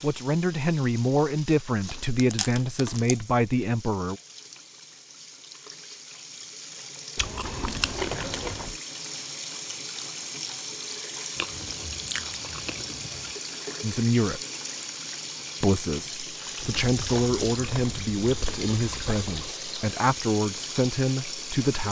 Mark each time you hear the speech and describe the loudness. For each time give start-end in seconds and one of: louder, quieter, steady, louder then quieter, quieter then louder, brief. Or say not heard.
0.0-4.2 steady
13.8-14.4 brief
15.6-21.8 steady.